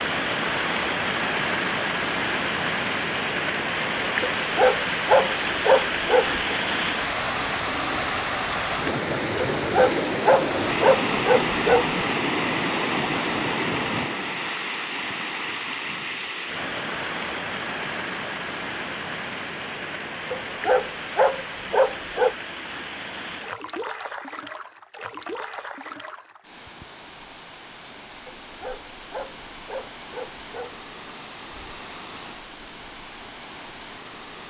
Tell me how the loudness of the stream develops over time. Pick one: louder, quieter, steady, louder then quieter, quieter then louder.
quieter.